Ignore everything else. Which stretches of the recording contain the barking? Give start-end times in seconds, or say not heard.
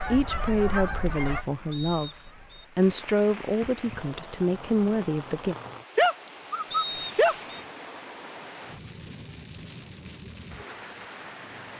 6.0-7.3.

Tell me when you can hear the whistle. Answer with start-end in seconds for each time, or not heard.
1.7-2.6, 6.7-7.6.